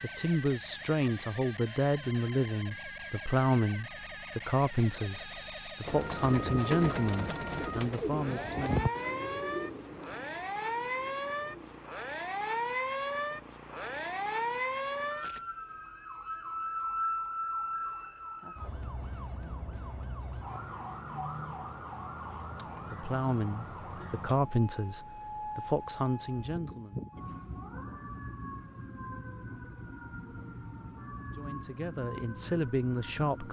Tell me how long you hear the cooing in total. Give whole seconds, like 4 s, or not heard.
6 s.